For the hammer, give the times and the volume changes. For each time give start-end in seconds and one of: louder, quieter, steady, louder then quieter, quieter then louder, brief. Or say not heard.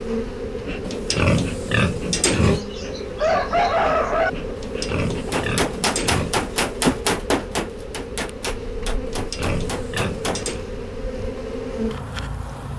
5.3-10.4 quieter.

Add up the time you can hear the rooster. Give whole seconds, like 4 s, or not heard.
2 s.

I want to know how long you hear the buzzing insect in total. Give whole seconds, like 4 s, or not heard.
13 s.